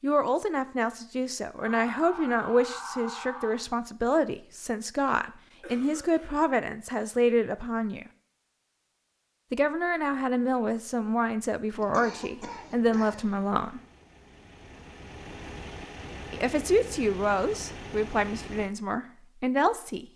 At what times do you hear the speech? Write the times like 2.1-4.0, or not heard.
0.0-8.1, 9.5-13.8, 16.3-20.1.